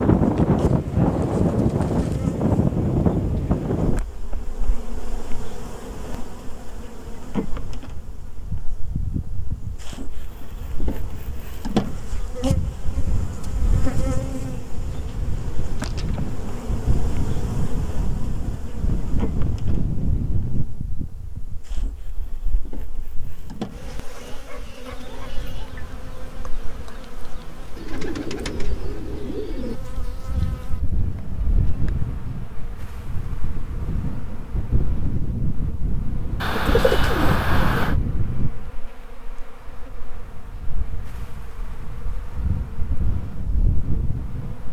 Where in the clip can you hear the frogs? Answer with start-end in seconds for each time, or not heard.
not heard.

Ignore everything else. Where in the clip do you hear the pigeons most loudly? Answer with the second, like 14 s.
37 s.